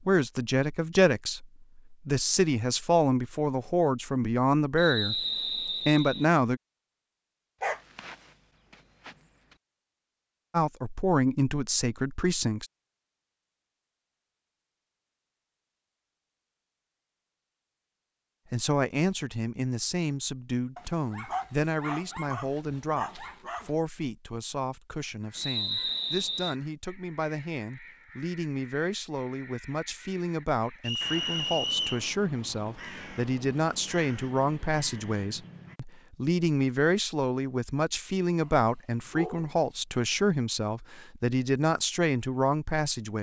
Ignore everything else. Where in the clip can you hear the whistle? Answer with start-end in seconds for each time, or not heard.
4.8-6.2, 25.4-26.6, 30.8-32.0.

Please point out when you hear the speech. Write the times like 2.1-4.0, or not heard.
0.1-6.6, 10.5-12.7, 18.5-43.1.